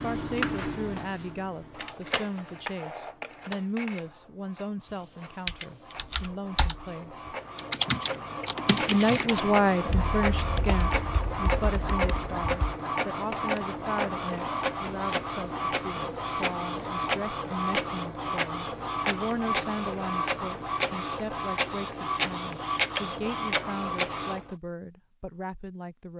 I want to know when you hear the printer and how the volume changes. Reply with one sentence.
The printer can be heard from 0.0 to 24.6 s, getting louder.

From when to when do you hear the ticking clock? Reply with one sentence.
The ticking clock can't be heard in this clip.